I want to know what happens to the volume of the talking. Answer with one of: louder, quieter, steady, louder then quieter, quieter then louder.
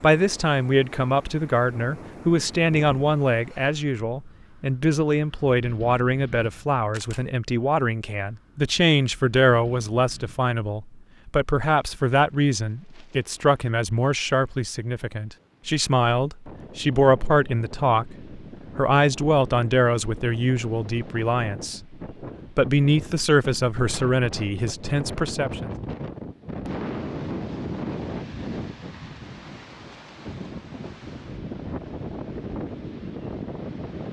steady.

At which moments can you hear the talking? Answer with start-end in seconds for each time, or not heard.
0.0-21.9, 22.6-25.7.